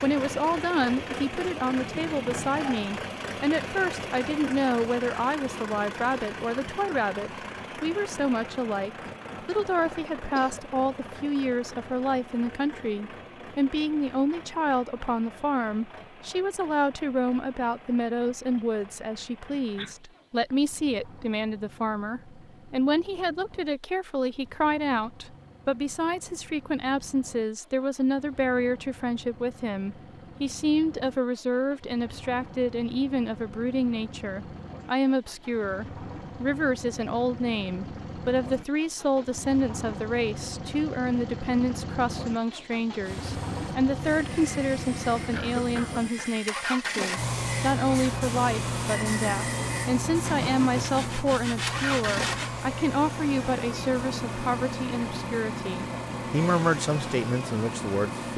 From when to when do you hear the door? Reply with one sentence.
The door can't be heard in this clip.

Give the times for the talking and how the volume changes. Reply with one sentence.
You can hear the talking from 0.0 to 58.3 s, at a steady volume.